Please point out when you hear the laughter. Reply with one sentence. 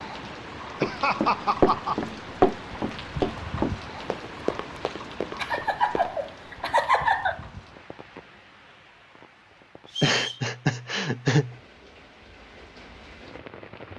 You can hear the laughter from 0.8 to 1.9 s, from 5.3 to 7.4 s and from 10.0 to 11.6 s.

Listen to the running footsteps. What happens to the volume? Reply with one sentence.
The volume of the running footsteps goes down.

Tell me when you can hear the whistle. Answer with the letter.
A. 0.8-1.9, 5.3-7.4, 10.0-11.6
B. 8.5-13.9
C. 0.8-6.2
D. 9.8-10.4
D.